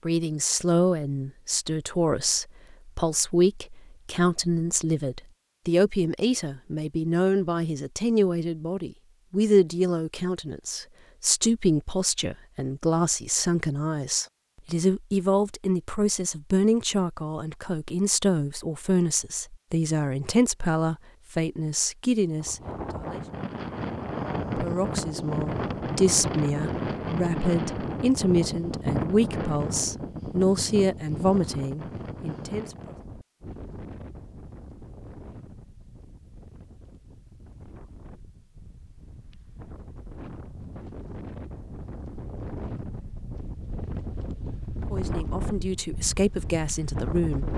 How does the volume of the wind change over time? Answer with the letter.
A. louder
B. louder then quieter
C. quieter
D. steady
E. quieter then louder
E.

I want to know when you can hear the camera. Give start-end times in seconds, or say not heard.
not heard.